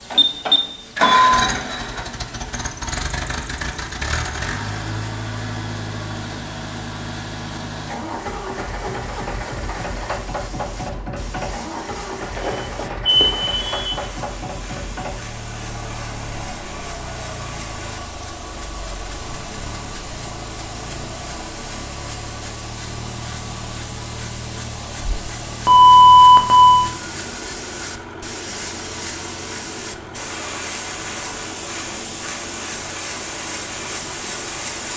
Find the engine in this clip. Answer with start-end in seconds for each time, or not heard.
0.0-34.9.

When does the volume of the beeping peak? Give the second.
26 s.